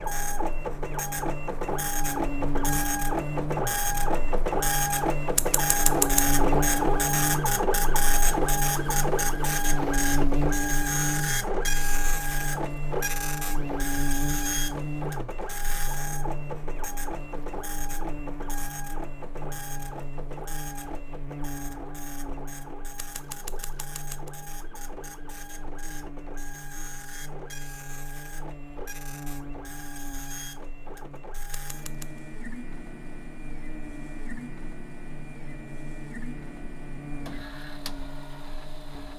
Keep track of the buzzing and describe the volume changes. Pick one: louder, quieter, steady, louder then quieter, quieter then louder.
quieter.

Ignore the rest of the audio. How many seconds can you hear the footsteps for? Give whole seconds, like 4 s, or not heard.
not heard.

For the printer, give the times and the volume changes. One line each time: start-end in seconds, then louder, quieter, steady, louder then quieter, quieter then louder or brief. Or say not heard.
0.0-39.1 quieter.